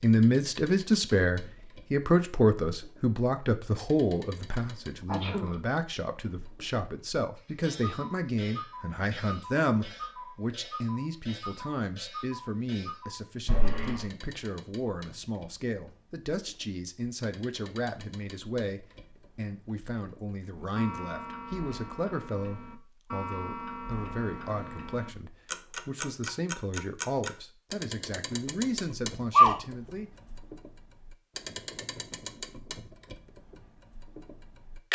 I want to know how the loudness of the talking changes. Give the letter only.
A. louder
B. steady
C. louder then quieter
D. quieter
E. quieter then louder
D.